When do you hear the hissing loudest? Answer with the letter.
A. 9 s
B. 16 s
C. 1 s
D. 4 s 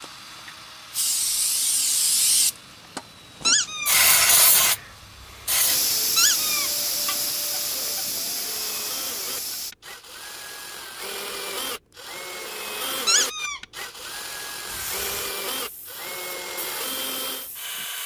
D.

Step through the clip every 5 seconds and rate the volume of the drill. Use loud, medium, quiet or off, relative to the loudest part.
quiet, medium, loud, loud.